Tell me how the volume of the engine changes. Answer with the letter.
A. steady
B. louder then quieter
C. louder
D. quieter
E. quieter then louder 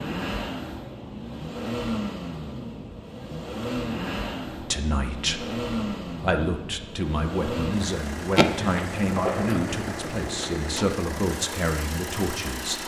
A.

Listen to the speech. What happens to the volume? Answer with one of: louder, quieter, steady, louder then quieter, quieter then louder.
steady.